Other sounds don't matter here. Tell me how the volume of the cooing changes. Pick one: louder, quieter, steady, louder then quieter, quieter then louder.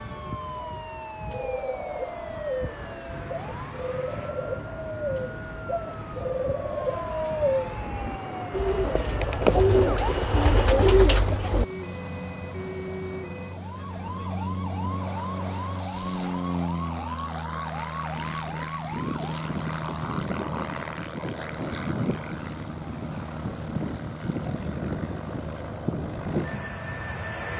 louder.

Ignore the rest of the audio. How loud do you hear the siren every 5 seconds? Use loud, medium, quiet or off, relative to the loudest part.
loud, loud, loud, loud, off, off.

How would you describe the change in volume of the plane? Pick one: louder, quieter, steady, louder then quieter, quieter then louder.
louder.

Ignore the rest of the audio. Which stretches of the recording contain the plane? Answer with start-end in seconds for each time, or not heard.
0.0-27.5.